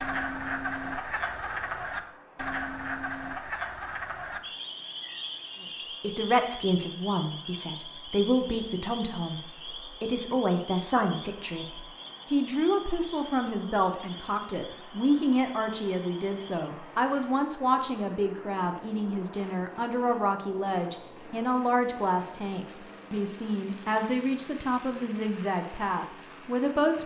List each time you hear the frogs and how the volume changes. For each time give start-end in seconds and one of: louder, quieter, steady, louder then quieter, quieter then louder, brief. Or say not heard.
0.0-16.7 quieter.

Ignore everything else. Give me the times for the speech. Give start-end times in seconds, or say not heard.
6.0-27.0.